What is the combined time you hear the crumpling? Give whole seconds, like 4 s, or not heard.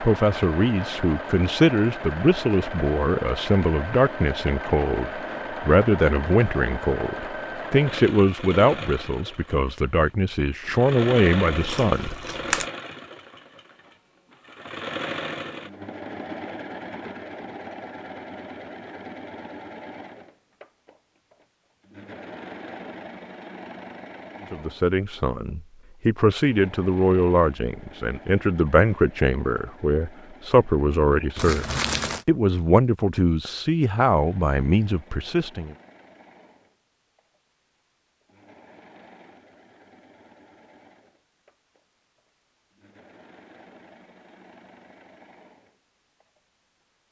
2 s.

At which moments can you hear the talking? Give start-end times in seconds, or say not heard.
0.0-12.2, 24.5-31.6, 32.2-35.8.